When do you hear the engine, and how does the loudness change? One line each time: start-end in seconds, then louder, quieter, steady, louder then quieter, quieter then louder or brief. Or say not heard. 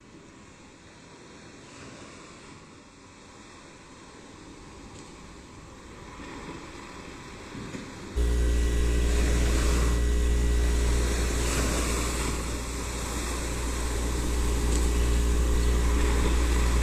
8.2-16.7 quieter then louder.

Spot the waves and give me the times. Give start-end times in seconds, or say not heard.
0.0-16.7.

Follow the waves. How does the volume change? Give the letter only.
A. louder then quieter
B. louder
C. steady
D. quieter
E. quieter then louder
B.